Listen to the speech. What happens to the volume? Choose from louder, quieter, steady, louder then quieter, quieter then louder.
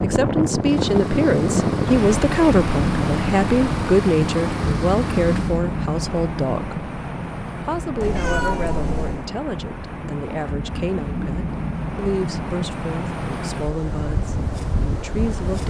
quieter.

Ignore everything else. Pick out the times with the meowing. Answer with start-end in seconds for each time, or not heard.
8.0-9.3.